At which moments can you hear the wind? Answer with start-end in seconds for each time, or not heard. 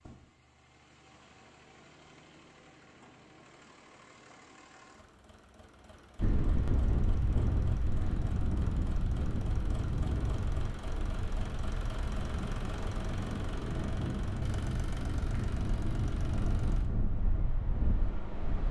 6.2-18.6.